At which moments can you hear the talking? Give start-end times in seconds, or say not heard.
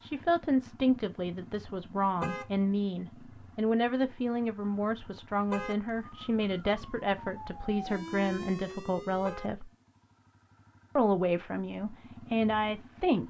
0.0-9.7, 10.9-13.2.